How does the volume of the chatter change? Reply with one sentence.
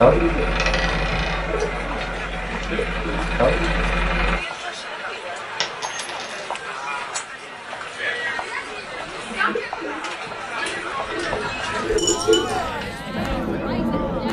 The volume of the chatter stays about the same.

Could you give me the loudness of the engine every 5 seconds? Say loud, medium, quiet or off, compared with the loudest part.
loud, off, loud.